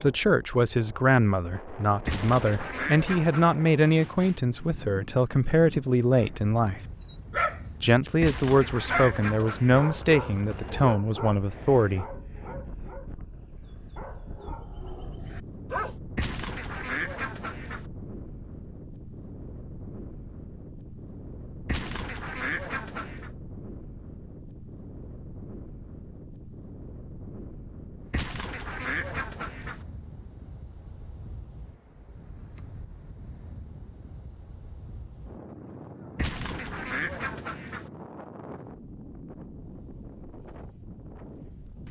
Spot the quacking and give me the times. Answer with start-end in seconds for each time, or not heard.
2.0-3.6, 8.2-9.9, 16.1-17.9, 21.6-23.3, 28.1-29.9, 36.1-37.9.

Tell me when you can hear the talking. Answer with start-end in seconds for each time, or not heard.
0.0-6.8, 7.8-12.1.